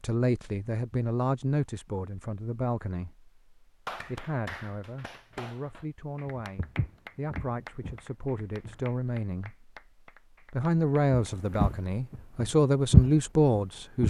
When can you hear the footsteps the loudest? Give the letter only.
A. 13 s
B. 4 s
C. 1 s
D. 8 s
A.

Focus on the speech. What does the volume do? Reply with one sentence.
The loudness of the speech goes down, then up.